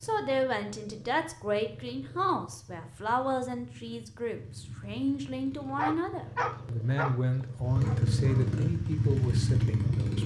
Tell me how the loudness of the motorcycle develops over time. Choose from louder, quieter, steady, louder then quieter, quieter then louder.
louder.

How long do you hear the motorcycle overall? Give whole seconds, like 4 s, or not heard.
10 s.